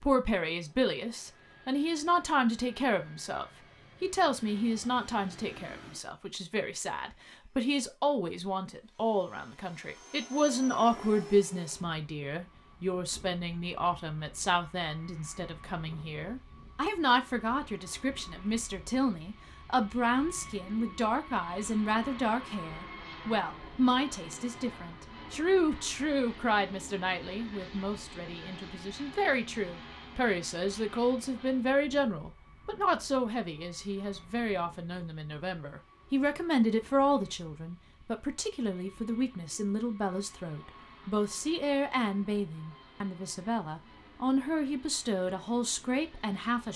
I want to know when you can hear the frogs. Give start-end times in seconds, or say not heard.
not heard.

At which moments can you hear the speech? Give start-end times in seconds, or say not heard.
0.0-46.7.